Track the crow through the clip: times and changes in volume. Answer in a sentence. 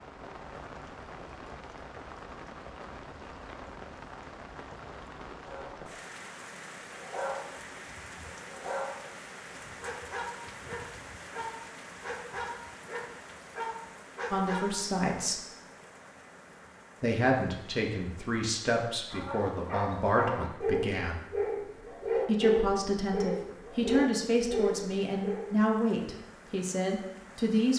The crow can't be heard in this clip.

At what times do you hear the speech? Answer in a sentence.
You can hear the speech from 14.3 to 15.4 s, from 17.0 to 21.2 s and from 22.2 to 27.7 s.